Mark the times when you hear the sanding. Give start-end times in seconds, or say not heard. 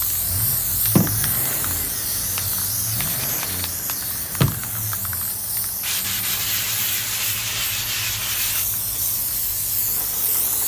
3.1-3.5, 5.8-8.7.